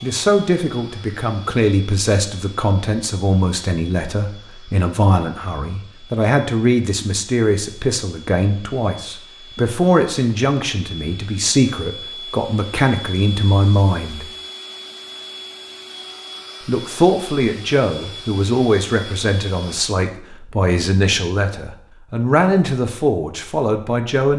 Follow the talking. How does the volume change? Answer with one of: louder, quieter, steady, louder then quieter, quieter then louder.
steady.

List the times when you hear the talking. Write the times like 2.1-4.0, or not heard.
0.0-14.2, 16.6-24.3.